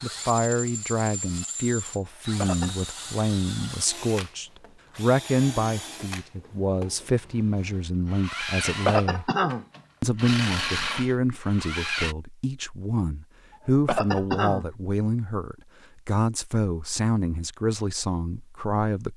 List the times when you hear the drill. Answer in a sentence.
The drill can be heard from 0.0 to 12.2 s.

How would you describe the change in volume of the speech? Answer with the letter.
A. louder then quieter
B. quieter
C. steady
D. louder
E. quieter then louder
C.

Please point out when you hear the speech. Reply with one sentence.
You can hear the speech from 0.0 to 9.3 s and from 10.0 to 19.1 s.